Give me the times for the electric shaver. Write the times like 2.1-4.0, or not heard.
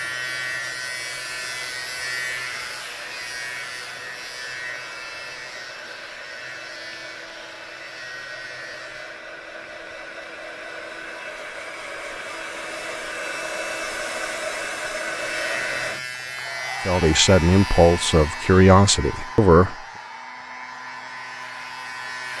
0.0-9.2, 15.1-22.3.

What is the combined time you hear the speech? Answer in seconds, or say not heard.
3 s.